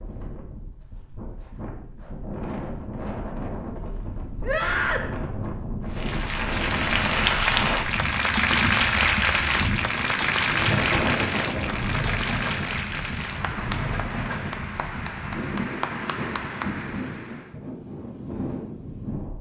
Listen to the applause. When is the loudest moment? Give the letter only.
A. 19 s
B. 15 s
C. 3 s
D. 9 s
D.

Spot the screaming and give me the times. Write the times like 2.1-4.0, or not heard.
4.4-5.1.